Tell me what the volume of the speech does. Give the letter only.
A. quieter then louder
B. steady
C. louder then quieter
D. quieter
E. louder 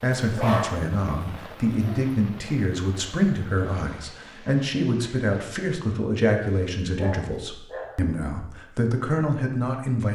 B.